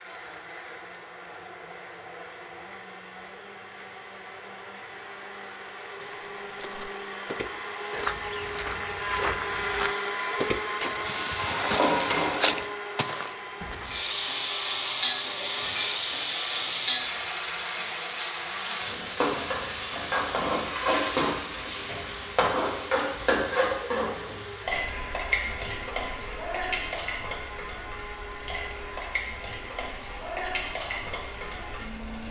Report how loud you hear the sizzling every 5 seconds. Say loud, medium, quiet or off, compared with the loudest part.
off, off, loud, loud, loud, medium, medium.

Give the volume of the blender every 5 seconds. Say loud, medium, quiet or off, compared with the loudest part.
medium, loud, loud, medium, medium, medium, medium.